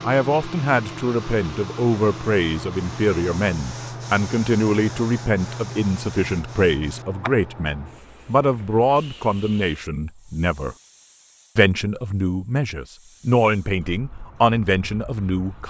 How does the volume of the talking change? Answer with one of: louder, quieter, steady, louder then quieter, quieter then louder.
steady.